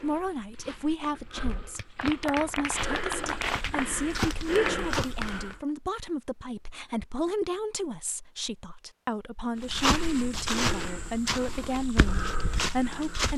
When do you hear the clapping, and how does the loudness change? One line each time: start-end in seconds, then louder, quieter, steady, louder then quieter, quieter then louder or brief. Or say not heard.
1.5-5.5 quieter then louder.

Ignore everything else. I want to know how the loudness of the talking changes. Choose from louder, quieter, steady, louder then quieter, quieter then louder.
steady.